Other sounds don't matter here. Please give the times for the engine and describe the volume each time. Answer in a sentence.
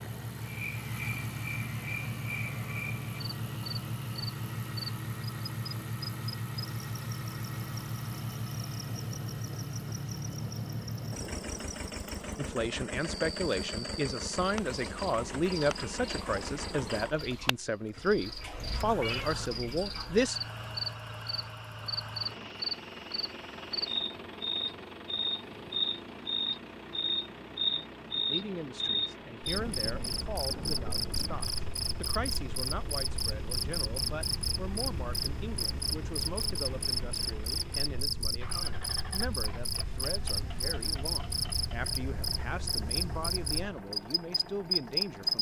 You can hear the engine from 0.0 to 45.3 s, getting quieter.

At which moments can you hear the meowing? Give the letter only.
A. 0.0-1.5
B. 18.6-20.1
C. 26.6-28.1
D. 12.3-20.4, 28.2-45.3
B.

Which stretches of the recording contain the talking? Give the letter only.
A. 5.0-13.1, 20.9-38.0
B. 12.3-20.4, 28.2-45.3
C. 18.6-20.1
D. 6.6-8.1
B.